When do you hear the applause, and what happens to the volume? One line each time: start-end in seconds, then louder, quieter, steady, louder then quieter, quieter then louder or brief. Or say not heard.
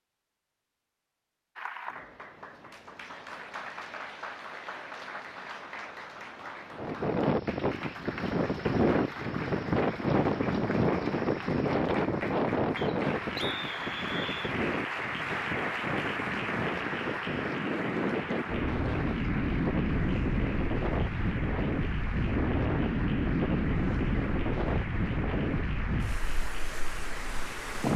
1.6-27.9 louder then quieter.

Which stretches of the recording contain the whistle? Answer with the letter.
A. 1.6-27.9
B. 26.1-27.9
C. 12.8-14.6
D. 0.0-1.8
C.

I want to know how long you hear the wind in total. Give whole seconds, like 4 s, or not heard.
21 s.